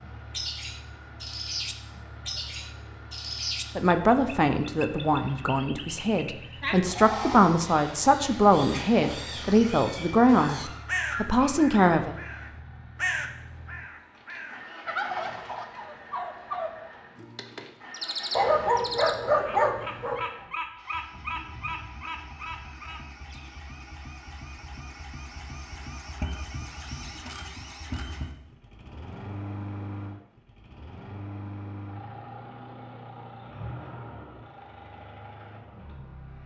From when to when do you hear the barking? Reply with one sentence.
You can hear the barking from 10.3 to 12.0 s and from 18.4 to 20.2 s.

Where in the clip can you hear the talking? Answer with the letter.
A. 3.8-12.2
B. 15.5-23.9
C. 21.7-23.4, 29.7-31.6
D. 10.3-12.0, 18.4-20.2
A.